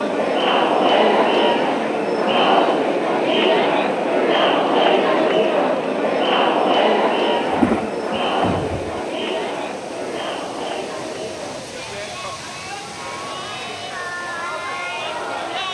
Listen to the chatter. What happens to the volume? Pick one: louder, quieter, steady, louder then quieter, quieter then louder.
quieter.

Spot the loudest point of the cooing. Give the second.
8 s.